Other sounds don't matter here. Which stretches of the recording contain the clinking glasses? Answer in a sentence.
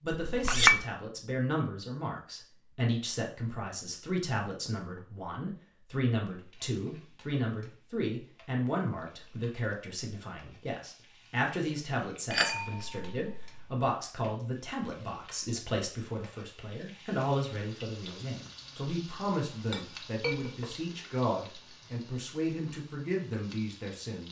The clinking glasses can be heard from 0.2 to 0.8 s, from 12.3 to 13.7 s and from 19.6 to 20.8 s.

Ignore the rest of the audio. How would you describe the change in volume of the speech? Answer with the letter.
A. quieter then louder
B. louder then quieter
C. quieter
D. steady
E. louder
D.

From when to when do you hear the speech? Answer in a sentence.
The speech can be heard from 0.0 to 24.2 s.